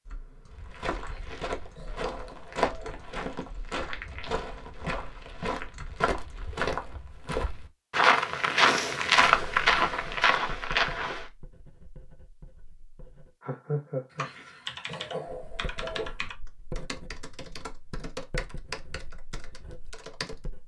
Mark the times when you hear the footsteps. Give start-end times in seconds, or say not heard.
0.5-11.3.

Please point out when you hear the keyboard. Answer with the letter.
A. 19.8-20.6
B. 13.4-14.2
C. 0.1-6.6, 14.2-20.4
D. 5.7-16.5
C.